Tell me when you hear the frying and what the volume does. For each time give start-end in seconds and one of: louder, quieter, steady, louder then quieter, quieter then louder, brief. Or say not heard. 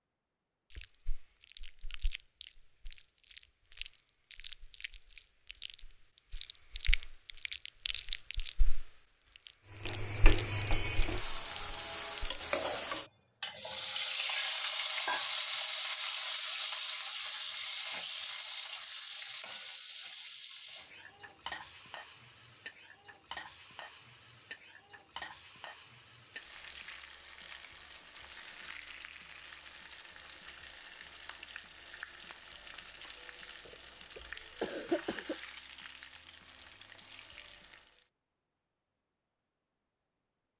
9.7-38.0 quieter.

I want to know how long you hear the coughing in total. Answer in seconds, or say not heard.
2 s.